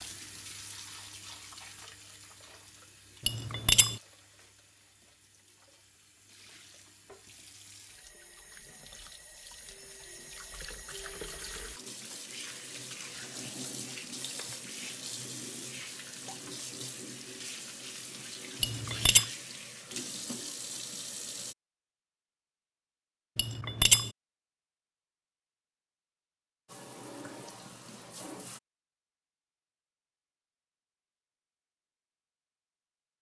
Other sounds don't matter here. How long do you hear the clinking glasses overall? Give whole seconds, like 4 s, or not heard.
2 s.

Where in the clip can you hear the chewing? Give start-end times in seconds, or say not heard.
not heard.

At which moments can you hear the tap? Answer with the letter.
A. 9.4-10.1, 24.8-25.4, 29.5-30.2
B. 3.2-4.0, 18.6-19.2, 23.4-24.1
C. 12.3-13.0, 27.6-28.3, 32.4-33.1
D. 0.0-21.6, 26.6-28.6
D.